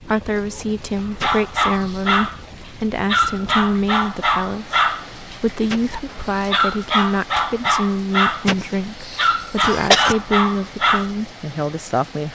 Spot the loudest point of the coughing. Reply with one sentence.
The loudest moment of the coughing is at 10 seconds.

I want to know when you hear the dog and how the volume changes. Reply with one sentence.
The dog can be heard briefly from 1.2 to 2.4 s; from 3.0 to 8.4 s, getting quieter then louder; and briefly from 9.2 to 11.1 s.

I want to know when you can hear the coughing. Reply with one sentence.
The coughing can be heard from 1.2 to 2.1 s, from 5.7 to 6.5 s and from 8.4 to 10.2 s.